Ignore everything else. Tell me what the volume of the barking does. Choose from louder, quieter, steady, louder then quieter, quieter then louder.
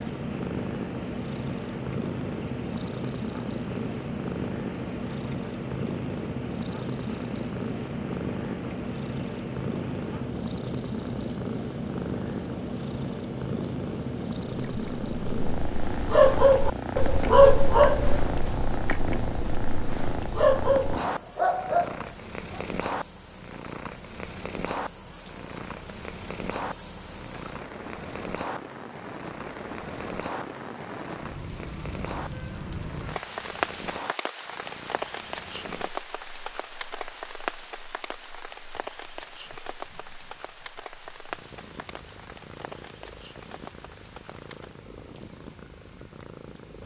quieter then louder.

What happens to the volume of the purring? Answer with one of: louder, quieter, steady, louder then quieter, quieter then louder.
quieter.